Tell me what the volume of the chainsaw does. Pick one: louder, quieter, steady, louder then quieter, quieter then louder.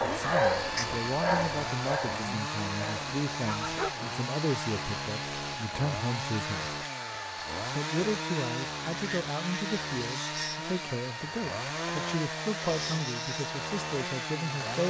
steady.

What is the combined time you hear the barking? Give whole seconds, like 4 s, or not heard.
4 s.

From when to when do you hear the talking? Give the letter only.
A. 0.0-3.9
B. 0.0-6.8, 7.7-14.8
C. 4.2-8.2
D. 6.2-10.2
B.